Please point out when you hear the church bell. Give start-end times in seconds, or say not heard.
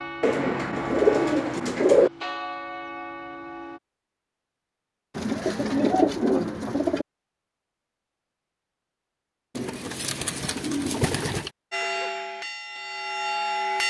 0.0-3.8, 11.7-13.8.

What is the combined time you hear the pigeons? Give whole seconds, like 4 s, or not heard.
6 s.